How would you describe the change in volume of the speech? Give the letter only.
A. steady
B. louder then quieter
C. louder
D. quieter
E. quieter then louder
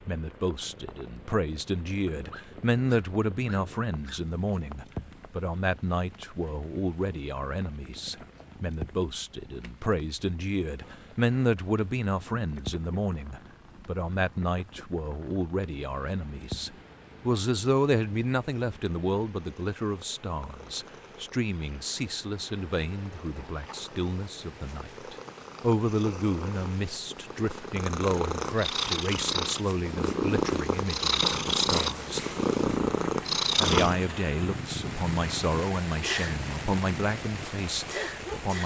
A.